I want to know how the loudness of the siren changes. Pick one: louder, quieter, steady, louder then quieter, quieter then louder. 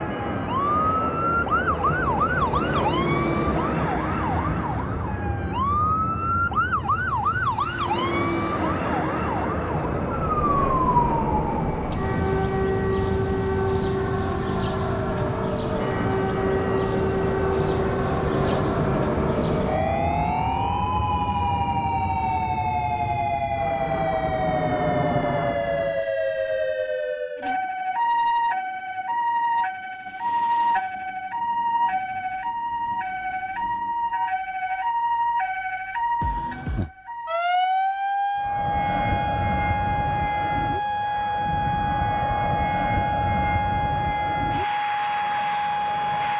steady.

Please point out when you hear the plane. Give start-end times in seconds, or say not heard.
0.0-26.1, 38.4-46.3.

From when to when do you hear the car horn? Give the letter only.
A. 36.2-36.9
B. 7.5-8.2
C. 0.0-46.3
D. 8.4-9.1
A.